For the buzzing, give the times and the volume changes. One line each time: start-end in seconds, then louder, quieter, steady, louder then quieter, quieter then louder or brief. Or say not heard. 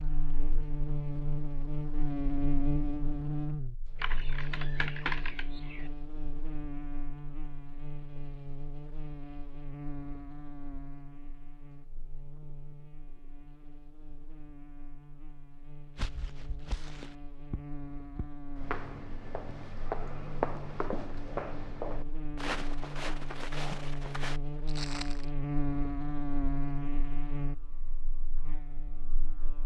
0.0-29.6 quieter then louder.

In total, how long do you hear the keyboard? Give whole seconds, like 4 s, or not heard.
2 s.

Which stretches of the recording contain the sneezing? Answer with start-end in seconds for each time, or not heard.
not heard.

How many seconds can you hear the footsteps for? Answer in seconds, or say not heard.
9 s.